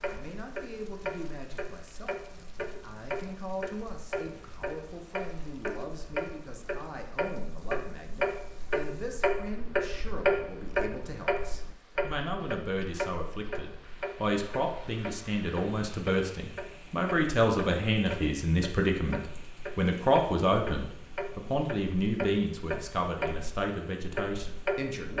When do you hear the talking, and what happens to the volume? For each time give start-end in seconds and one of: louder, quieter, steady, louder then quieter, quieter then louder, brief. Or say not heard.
0.1-25.1 louder.